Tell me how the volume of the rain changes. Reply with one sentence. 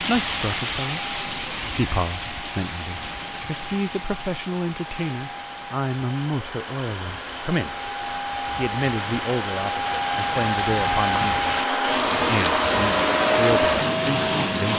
The volume of the rain goes down, then up.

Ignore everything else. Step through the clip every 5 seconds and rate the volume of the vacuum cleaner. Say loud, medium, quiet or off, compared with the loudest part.
quiet, medium, loud.